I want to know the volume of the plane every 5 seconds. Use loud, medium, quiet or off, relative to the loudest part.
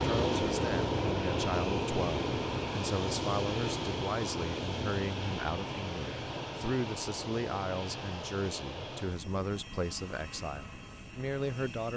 loud, medium, quiet.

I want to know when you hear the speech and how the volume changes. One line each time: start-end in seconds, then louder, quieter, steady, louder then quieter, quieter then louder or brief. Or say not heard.
0.0-11.9 steady.